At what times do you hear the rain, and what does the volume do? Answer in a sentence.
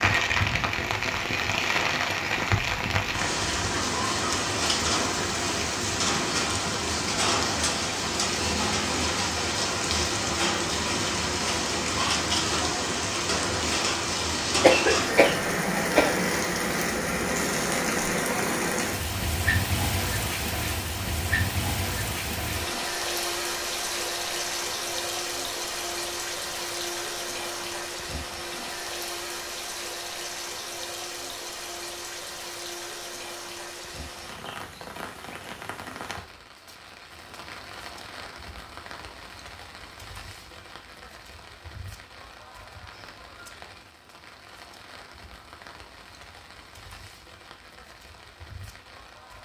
The rain can be heard from 0.0 to 49.4 s, getting quieter.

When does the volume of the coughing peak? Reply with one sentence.
The volume of the coughing peaks at 15 seconds.